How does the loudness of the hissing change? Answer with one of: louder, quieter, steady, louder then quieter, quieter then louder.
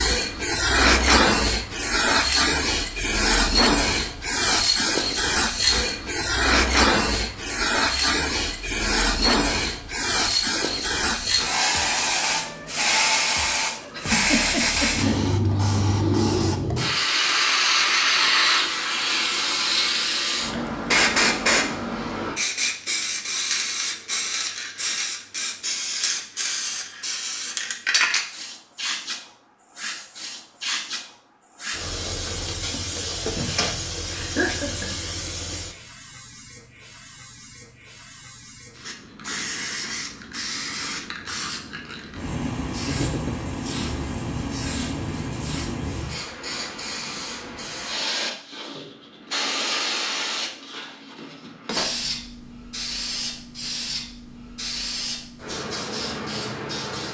quieter.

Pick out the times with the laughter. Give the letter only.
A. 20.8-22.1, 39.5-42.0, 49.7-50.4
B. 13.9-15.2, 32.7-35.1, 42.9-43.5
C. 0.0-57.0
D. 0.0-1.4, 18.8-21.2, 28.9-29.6
B.